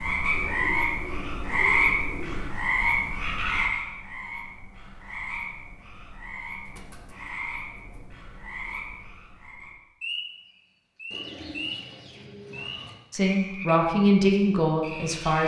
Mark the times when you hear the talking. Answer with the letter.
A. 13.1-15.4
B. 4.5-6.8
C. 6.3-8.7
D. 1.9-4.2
A.